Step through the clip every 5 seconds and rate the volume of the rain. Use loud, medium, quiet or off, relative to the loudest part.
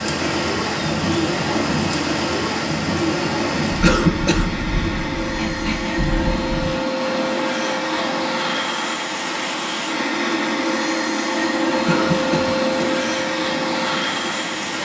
loud, medium, medium.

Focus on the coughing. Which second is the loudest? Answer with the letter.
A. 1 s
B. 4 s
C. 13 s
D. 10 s
B.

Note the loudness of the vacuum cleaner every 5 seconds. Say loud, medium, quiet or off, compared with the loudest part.
medium, loud, loud.